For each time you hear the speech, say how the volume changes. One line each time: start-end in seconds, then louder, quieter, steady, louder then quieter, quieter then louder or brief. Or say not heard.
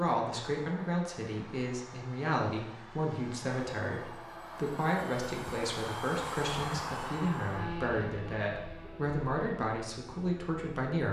0.0-11.0 steady.